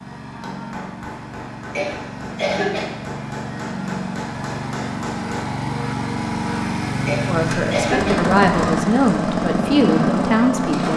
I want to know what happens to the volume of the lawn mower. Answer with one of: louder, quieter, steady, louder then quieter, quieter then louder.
louder.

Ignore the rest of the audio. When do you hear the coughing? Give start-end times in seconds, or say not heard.
1.8-2.9, 7.0-8.2.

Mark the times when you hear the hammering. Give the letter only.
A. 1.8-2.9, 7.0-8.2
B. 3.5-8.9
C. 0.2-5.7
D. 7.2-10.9
C.